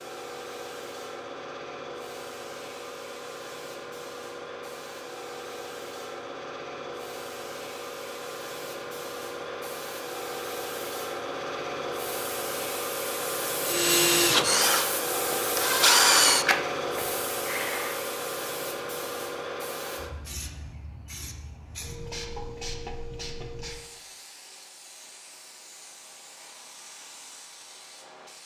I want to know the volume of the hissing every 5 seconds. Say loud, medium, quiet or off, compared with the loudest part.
medium, medium, loud, loud, medium, quiet.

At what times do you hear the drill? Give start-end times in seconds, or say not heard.
13.7-18.1.